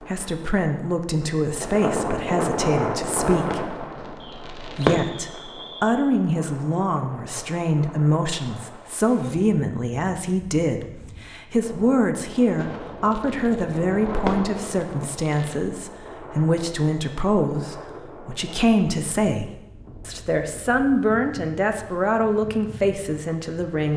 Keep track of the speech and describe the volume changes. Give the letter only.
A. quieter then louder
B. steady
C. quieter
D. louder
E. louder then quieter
B.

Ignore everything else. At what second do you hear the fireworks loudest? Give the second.
5 s.